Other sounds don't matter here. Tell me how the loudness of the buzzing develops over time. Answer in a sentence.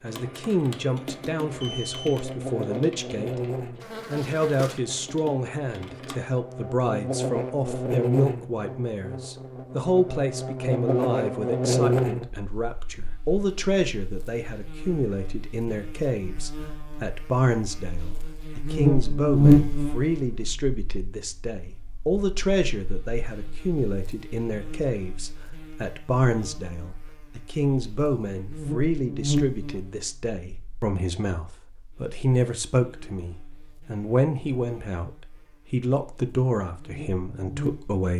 The loudness of the buzzing goes up, then down.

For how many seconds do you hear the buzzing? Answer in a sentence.
You can hear the buzzing for 38 seconds altogether.